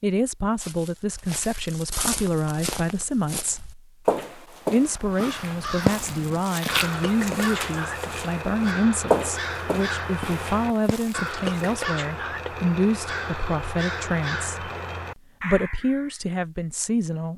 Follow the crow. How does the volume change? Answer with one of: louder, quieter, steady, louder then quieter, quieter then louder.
steady.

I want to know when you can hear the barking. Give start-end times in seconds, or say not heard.
not heard.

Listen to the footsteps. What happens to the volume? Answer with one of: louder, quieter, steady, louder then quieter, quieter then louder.
louder then quieter.